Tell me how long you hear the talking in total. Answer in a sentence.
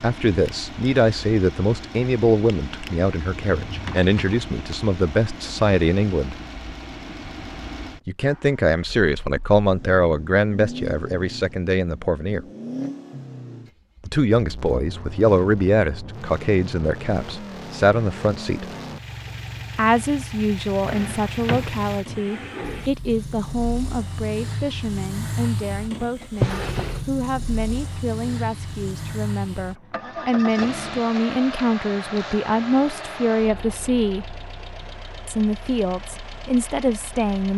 You can hear the talking for 32 seconds altogether.